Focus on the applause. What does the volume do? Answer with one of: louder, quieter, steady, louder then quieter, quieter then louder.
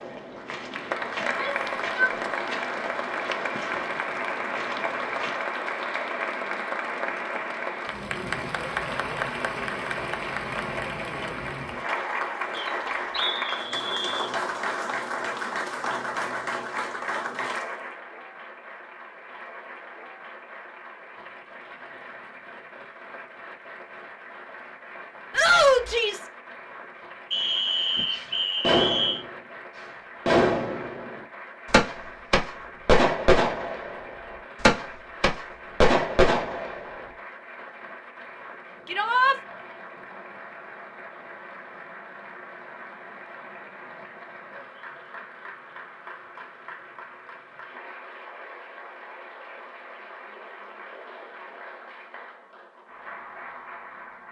quieter.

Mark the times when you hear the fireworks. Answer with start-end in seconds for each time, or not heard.
27.9-37.0.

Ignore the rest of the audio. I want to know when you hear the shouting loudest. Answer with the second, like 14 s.
26 s.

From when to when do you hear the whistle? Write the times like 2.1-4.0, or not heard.
12.5-14.3, 27.3-29.2.